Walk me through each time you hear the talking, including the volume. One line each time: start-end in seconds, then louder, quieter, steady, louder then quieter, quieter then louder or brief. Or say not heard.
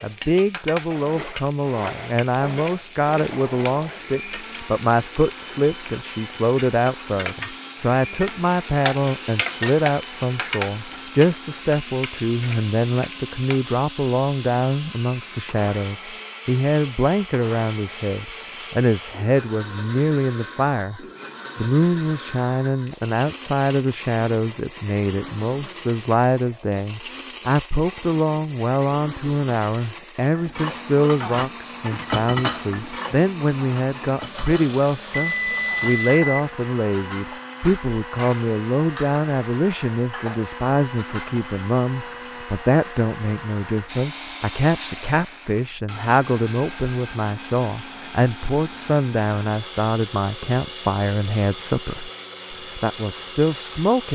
0.0-54.1 steady.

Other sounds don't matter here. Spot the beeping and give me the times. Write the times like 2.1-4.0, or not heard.
35.1-37.0.